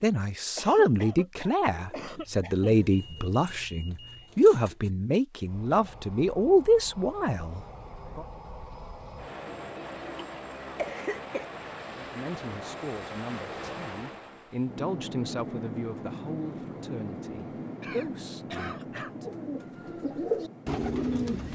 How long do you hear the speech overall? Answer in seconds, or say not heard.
16 s.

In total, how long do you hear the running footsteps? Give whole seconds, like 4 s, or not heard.
not heard.